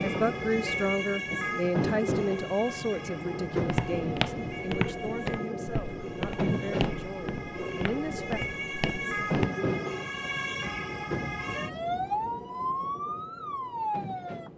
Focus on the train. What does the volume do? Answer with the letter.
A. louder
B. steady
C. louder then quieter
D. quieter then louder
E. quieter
E.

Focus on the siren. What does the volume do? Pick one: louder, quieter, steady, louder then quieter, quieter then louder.
quieter then louder.